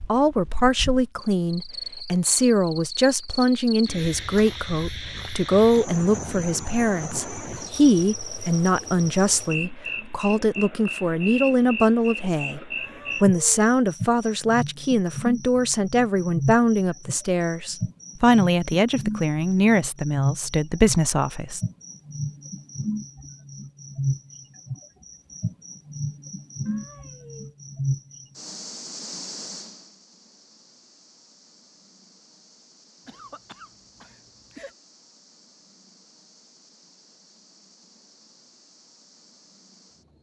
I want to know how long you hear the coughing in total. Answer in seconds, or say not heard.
2 s.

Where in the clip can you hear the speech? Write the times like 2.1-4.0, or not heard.
0.1-12.6, 13.2-21.6.